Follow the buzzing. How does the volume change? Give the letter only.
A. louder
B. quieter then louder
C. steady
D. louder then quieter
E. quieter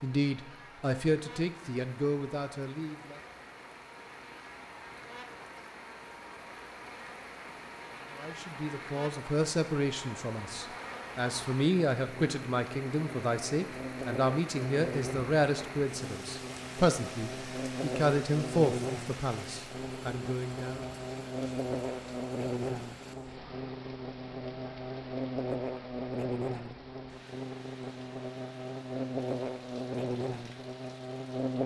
A.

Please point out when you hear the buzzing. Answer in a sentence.
You can hear the buzzing from 0.0 to 31.6 s.